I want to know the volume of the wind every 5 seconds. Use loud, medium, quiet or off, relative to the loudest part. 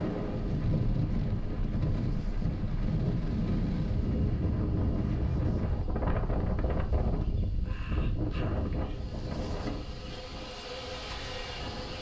loud, loud, quiet.